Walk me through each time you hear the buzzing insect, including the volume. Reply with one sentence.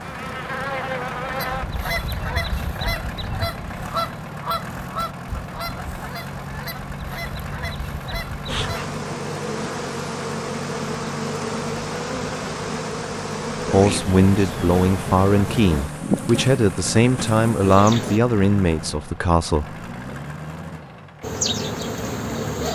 The buzzing insect can be heard briefly from 0.0 to 1.6 s; from 8.4 to 18.2 s, at a steady volume; and briefly from 21.2 to 22.6 s.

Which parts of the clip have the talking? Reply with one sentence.
You can hear the talking from 13.7 to 19.6 s.